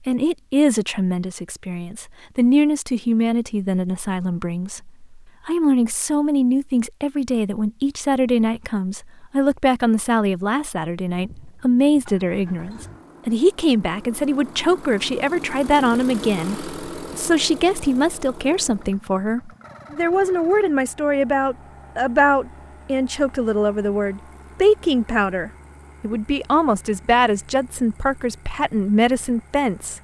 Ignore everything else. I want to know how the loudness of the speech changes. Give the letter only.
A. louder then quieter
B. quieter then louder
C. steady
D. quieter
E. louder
C.